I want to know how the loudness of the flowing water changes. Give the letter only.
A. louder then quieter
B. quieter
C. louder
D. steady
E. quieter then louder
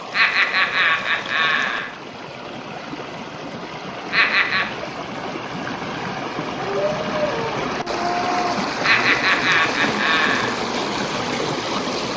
C.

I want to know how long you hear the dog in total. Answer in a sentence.
You can hear the dog for 2 seconds altogether.